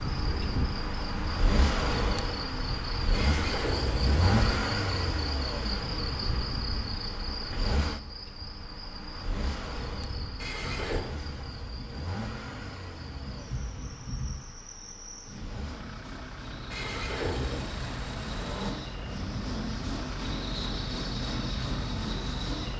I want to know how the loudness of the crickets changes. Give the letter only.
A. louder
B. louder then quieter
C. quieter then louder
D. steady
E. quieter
C.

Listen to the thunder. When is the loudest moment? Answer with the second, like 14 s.
14 s.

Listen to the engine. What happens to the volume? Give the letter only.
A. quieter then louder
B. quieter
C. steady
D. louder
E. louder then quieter
B.